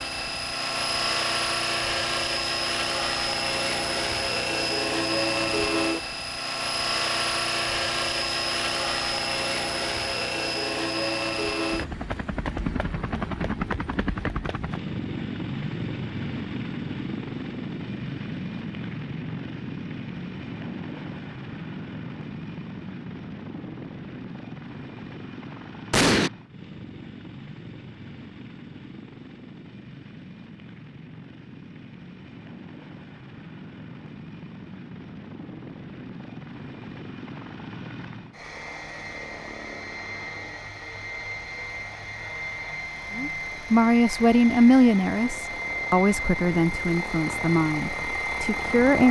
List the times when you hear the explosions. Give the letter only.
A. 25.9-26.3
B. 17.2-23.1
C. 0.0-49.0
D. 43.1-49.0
A.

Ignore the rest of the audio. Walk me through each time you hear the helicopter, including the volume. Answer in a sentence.
The helicopter can be heard from 0.0 to 49.0 s, getting quieter then louder.